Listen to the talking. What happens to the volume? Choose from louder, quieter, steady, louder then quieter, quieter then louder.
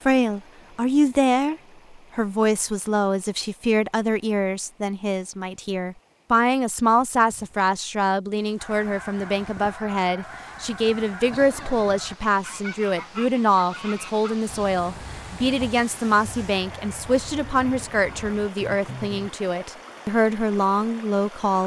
steady.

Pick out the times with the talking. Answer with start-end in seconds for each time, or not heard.
0.1-21.6.